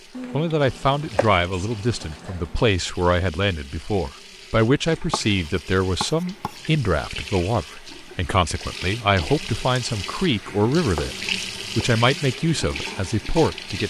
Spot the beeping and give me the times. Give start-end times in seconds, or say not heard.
not heard.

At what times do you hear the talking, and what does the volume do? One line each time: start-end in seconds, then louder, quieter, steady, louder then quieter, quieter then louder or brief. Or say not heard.
0.3-11.2 steady
11.8-13.8 brief.